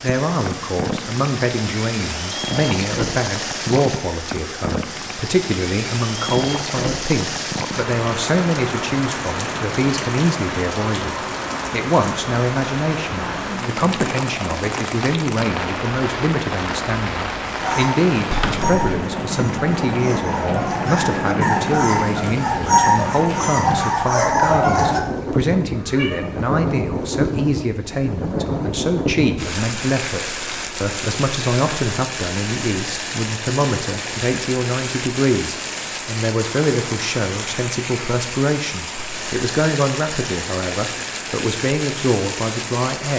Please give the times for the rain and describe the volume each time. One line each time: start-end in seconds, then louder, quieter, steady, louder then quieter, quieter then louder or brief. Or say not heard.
0.0-43.1 steady.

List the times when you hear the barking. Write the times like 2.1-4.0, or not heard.
17.6-25.0.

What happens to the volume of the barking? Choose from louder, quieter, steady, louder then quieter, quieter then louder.
louder.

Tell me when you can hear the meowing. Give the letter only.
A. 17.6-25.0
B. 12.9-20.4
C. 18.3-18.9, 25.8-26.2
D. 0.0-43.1
C.